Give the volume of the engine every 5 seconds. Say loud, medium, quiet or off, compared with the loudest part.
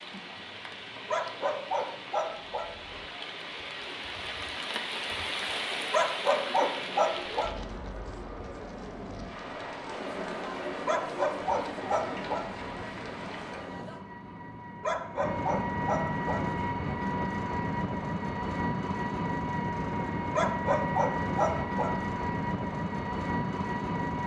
off, quiet, quiet, loud, loud.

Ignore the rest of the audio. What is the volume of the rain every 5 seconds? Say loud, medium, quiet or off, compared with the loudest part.
loud, loud, medium, off, off.